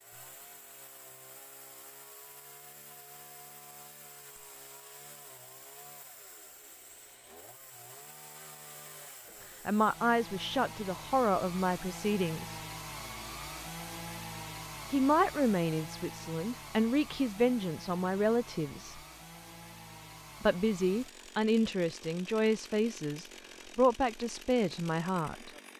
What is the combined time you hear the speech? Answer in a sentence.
You can hear the speech for 12 seconds altogether.